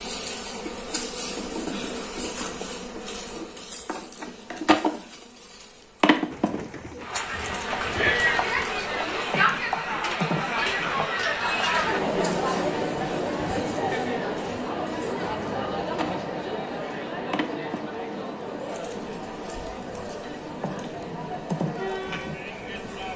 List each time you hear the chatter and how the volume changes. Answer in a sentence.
The chatter can be heard from 7.0 to 23.1 s, getting quieter.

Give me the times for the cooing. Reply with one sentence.
You can hear the cooing from 6.3 to 8.7 s.